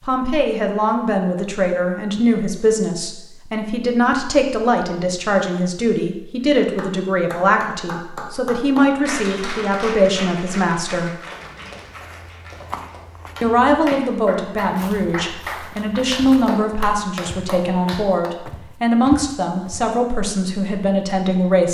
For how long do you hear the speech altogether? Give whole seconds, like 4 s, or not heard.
19 s.